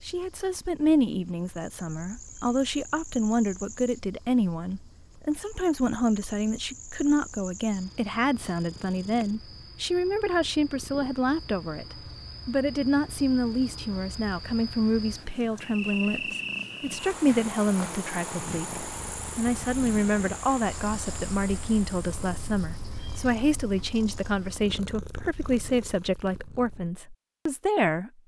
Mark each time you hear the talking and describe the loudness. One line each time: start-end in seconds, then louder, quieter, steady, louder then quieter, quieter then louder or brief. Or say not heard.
0.1-28.1 steady.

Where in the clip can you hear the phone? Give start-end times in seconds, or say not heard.
not heard.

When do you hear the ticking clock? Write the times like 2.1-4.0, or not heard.
not heard.